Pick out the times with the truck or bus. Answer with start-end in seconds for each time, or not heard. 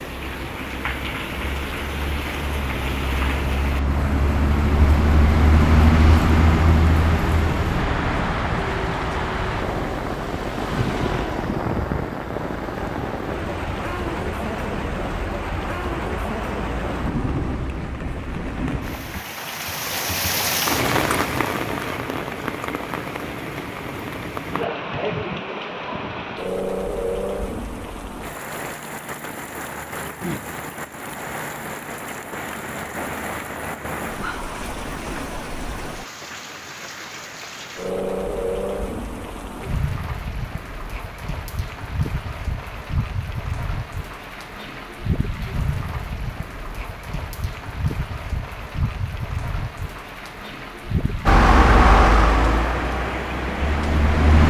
0.0-19.2, 51.2-54.4.